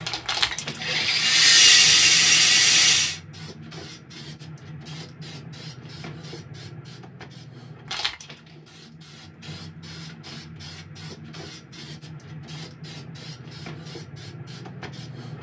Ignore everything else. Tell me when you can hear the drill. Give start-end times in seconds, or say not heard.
0.0-3.1.